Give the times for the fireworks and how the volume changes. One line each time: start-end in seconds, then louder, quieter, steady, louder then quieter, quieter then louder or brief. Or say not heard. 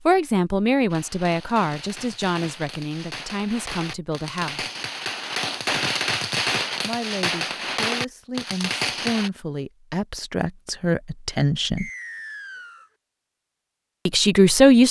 0.9-9.3 louder.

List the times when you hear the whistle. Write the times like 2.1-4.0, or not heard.
11.8-12.9.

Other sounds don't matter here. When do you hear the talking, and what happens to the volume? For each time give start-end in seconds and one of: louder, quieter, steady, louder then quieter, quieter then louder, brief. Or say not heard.
0.1-4.7 quieter
6.8-11.9 louder
14.1-14.8 brief.